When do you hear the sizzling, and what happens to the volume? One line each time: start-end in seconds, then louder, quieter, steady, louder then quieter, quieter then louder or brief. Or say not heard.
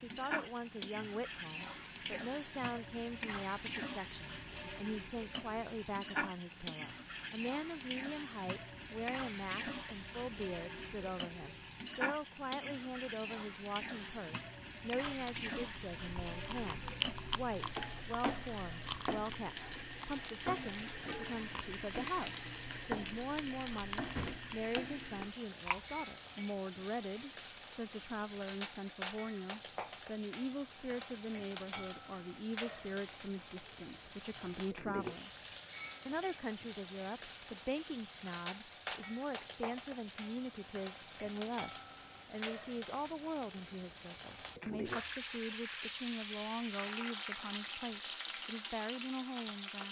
0.0-49.8 steady.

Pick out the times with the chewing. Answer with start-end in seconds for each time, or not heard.
15.1-25.9.